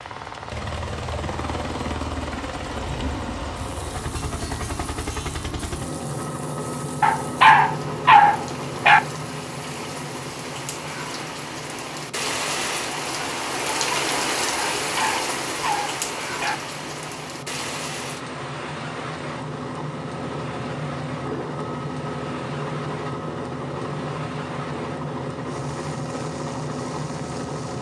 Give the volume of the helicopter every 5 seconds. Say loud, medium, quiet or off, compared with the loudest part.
loud, loud, medium, medium, loud, loud.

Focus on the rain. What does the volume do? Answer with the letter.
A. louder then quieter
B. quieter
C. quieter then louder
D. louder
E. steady
A.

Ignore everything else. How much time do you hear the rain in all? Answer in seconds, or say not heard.
28 s.